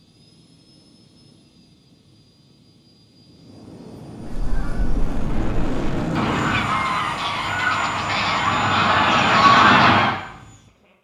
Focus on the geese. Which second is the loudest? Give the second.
10 s.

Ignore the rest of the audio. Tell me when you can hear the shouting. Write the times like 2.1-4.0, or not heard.
not heard.